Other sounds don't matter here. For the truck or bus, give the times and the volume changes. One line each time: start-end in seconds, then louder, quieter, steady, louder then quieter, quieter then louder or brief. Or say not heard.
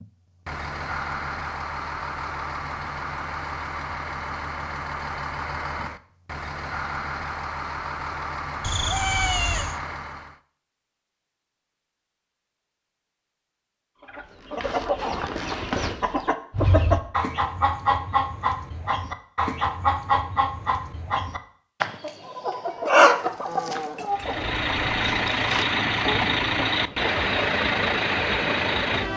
0.0-10.4 steady
24.1-29.1 steady.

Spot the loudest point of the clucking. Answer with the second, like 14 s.
23 s.